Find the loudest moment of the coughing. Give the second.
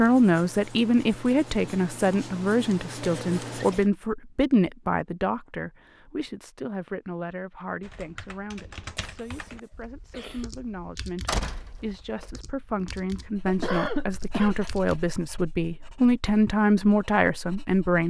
14 s.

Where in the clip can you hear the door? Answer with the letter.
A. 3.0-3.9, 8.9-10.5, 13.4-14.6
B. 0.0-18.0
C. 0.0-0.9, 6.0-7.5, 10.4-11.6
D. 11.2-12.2
D.